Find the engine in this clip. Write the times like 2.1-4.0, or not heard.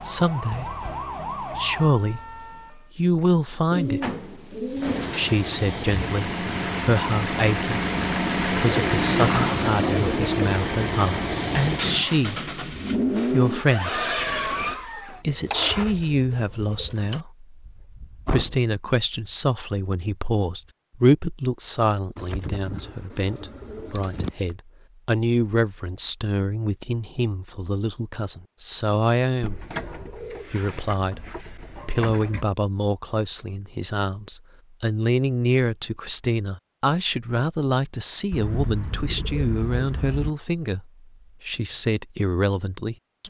4.8-15.9.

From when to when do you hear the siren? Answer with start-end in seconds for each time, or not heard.
0.0-2.9.